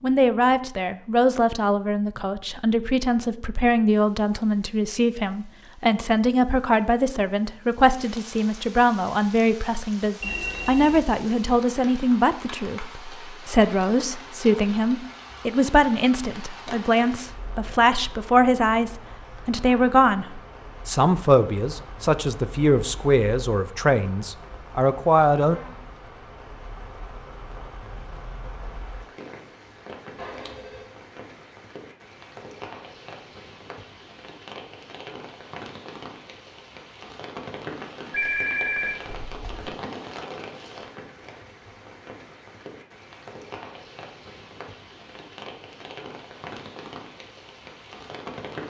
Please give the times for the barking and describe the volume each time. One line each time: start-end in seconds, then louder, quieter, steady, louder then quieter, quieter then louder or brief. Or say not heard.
not heard.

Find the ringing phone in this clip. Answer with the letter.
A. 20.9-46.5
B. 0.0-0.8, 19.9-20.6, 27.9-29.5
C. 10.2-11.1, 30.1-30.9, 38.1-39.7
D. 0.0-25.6
C.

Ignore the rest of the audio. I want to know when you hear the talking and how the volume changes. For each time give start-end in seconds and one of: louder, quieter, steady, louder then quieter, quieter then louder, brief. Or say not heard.
0.0-25.6 steady.